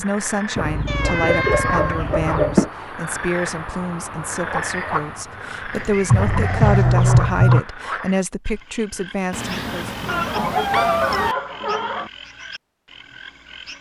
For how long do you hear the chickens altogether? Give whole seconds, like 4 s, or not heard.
6 s.